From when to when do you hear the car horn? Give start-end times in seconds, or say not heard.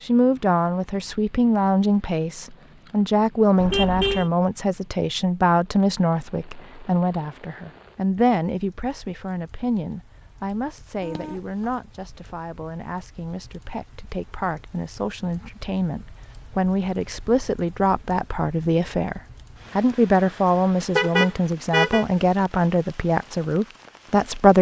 3.6-4.3, 11.0-11.7, 20.9-22.1.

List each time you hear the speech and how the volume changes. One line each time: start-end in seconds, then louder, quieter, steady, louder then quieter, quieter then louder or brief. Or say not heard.
0.0-24.5 quieter then louder.